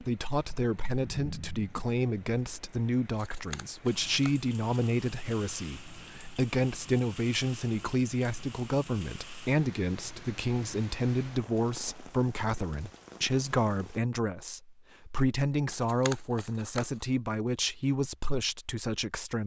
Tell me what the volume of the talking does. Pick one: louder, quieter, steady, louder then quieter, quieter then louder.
steady.